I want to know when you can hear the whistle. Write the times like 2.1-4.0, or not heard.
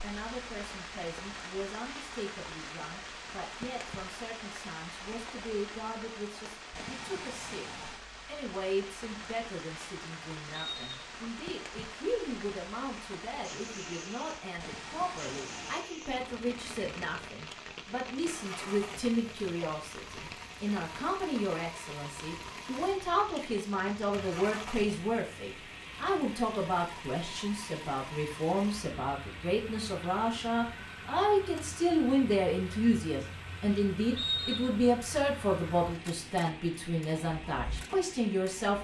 10.5-11.2, 34.1-34.8.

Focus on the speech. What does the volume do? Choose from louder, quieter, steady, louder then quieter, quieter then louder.
louder.